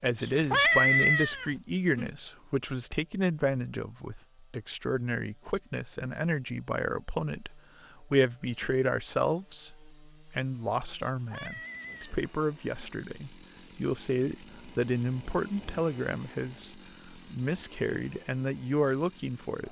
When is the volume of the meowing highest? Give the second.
1 s.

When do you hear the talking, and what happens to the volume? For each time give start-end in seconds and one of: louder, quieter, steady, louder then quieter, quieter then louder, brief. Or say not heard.
0.0-19.6 steady.